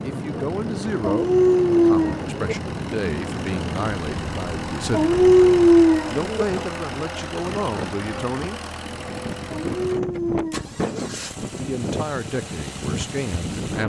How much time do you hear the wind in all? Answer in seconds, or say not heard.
14 s.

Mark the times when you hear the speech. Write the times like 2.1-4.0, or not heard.
0.0-8.6, 11.5-13.8.